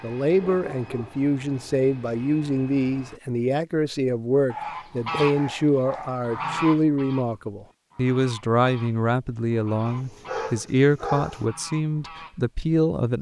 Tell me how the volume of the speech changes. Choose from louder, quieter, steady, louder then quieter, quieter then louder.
steady.